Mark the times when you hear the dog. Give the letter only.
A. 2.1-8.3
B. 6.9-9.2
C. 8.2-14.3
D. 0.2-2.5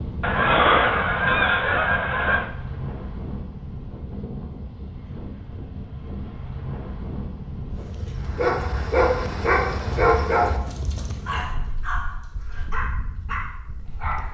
C.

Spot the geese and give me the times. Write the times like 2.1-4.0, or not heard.
0.2-2.5.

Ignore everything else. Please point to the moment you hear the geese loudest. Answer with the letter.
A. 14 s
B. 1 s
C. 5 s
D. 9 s
B.